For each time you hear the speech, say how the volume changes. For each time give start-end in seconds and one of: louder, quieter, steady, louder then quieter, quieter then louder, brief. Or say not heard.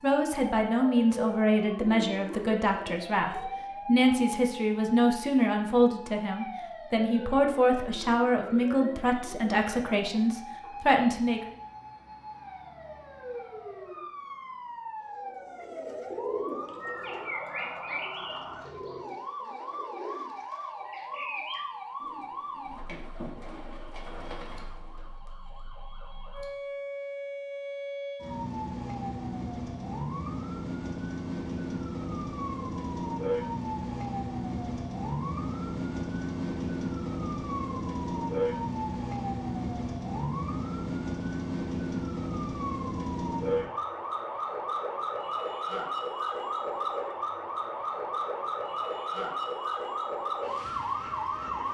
0.0-11.4 steady.